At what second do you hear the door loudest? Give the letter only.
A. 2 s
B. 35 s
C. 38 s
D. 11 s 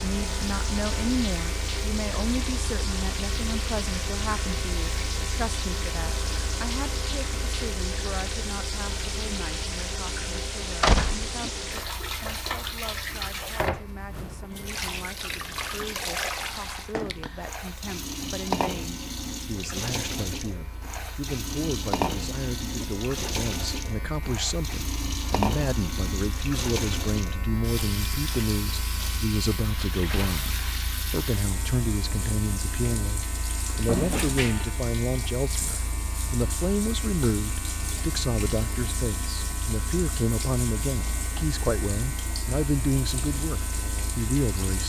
D.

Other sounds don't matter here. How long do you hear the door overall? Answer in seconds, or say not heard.
2 s.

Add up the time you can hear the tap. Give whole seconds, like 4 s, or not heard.
45 s.